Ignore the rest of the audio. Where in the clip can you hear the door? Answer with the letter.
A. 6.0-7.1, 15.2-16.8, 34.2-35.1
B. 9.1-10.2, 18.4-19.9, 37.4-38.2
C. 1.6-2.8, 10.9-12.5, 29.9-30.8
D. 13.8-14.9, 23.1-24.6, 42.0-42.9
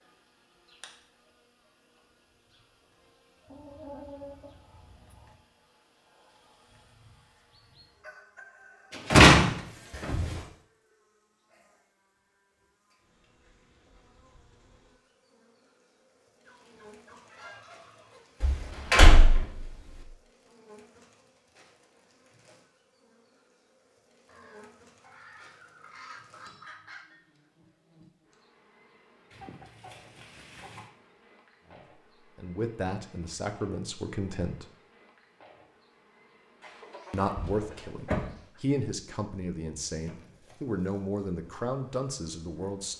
B.